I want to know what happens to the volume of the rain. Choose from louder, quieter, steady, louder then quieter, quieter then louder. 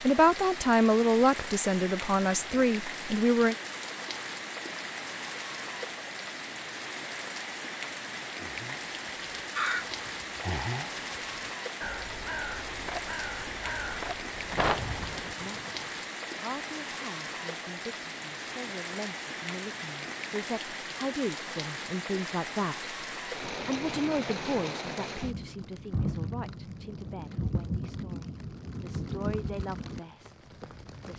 steady.